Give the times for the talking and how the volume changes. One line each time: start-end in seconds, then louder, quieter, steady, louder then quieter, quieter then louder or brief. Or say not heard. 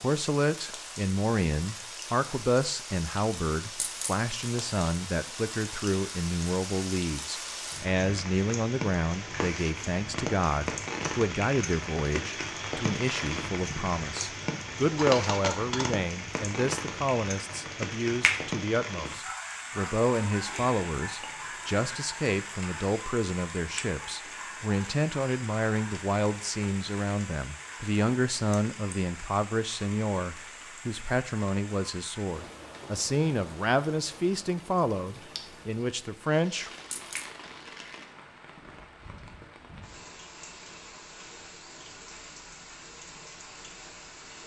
0.0-36.7 steady.